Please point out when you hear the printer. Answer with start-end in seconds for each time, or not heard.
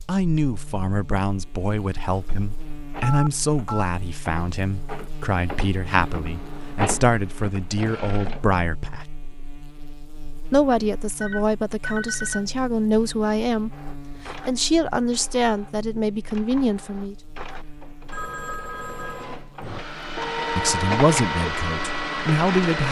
1.9-8.6, 13.7-22.8.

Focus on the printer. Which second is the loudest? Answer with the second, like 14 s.
21 s.